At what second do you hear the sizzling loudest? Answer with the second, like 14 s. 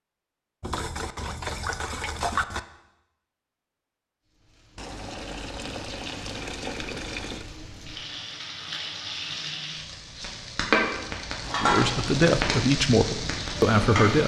11 s.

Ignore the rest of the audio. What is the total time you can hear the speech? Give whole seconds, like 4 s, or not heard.
3 s.